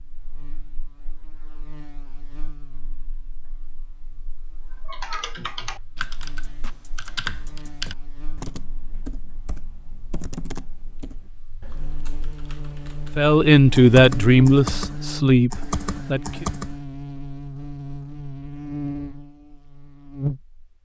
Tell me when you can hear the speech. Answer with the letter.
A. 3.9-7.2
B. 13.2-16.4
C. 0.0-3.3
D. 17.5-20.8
B.